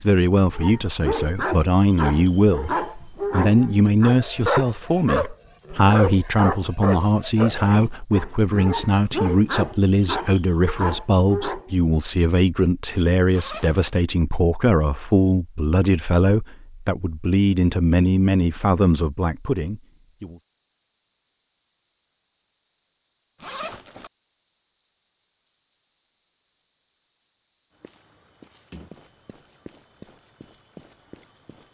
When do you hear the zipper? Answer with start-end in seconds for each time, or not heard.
13.3-13.9, 23.4-24.1.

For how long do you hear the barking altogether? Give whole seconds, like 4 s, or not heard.
11 s.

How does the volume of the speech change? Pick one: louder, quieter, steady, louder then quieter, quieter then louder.
steady.